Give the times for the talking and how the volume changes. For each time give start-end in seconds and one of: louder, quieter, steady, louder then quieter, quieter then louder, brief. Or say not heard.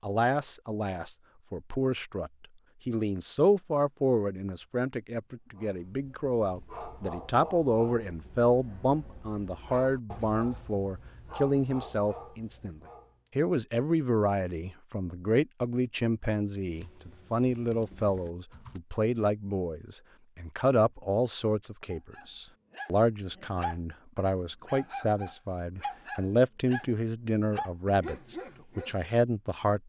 0.0-29.8 steady.